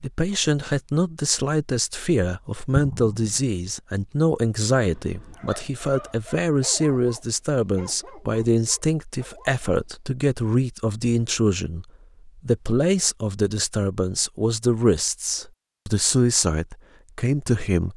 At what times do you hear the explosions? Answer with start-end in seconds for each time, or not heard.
2.7-3.4.